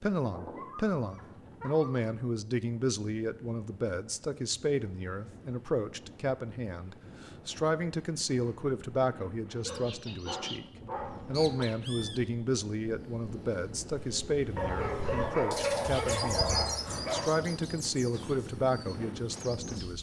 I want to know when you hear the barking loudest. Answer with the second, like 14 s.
16 s.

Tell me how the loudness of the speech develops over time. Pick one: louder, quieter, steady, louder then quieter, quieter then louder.
steady.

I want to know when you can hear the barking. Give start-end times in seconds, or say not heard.
0.2-2.1, 9.7-11.7, 14.6-17.4.